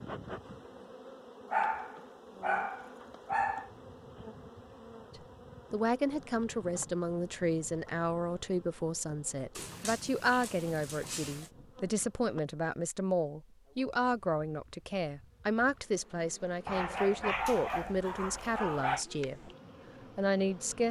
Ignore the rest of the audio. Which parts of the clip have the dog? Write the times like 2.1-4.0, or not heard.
1.5-3.7, 9.6-11.5, 16.6-19.1.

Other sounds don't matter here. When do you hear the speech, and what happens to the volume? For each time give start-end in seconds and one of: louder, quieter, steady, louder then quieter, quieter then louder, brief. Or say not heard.
5.7-19.5 steady
20.1-20.8 brief.